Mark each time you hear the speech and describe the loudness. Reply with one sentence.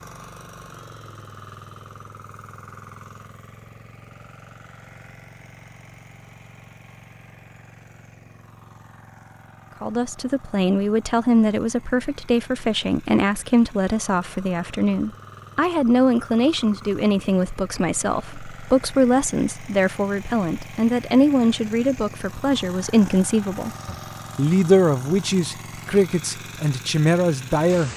You can hear the speech from 9.8 to 27.9 s, at a steady volume.